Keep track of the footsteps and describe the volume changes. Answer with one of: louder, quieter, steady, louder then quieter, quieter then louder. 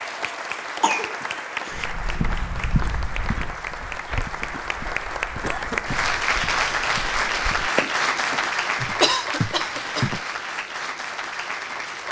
quieter then louder.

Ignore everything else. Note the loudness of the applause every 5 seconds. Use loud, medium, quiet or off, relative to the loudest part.
medium, loud, medium.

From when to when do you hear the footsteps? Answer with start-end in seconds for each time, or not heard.
1.7-10.2.